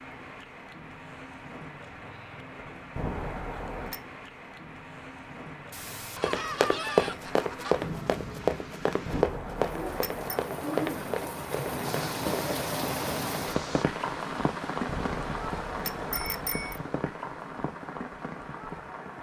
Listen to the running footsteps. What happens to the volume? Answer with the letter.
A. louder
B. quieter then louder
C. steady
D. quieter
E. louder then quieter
D.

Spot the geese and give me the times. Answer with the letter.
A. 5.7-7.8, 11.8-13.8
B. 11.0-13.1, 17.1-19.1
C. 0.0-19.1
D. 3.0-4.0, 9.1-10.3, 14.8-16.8
A.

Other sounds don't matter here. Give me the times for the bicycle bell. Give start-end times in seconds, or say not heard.
3.0-4.0, 9.1-10.3, 14.8-16.8.